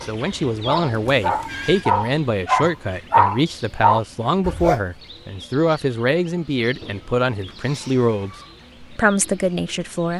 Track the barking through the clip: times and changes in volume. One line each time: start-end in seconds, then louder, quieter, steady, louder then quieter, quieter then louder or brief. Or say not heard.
0.0-4.8 louder.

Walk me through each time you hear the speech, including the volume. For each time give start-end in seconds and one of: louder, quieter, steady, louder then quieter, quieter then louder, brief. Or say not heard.
0.0-10.1 steady.